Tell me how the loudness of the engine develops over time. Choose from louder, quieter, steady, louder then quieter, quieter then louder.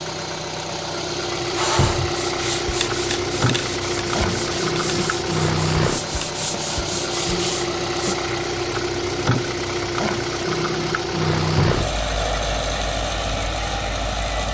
steady.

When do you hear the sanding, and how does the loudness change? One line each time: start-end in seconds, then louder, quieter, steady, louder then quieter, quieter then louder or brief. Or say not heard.
1.6-8.2 steady.